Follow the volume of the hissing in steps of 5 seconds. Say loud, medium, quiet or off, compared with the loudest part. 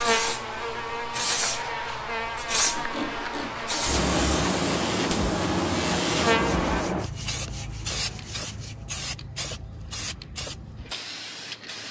loud, loud, medium.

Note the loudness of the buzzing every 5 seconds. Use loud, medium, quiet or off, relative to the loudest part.
loud, loud, off.